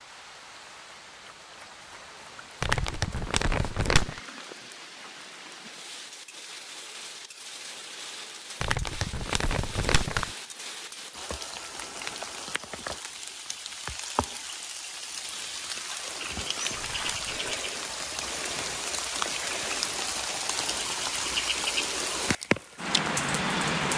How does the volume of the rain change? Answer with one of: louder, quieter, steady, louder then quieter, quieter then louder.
louder.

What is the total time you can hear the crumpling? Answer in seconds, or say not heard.
4 s.